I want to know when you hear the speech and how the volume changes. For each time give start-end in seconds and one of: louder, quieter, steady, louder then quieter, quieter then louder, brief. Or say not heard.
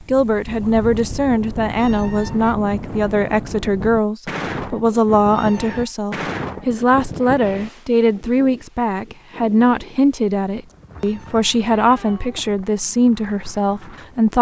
0.1-14.3 steady.